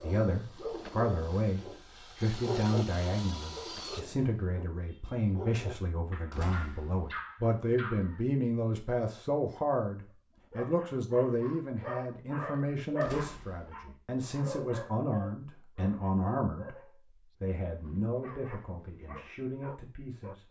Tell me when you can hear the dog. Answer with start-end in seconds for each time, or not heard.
0.0-8.2, 10.5-20.4.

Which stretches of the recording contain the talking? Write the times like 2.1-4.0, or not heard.
0.0-20.4.